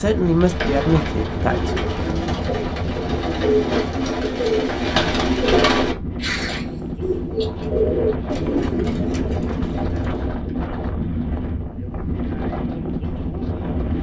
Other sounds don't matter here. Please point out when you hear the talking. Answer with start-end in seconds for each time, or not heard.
0.0-1.8.